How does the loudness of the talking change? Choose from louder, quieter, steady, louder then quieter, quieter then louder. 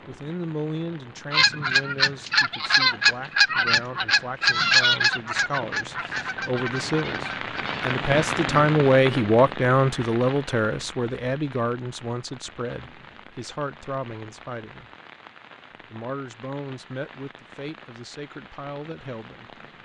louder then quieter.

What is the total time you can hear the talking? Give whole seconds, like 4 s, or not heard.
18 s.